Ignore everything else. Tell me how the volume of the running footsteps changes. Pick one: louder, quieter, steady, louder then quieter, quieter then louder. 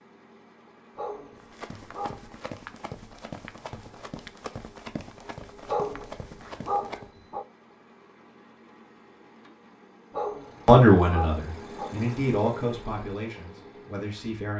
steady.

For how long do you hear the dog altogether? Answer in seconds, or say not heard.
5 s.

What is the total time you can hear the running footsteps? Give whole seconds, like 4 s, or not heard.
6 s.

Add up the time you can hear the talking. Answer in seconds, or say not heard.
4 s.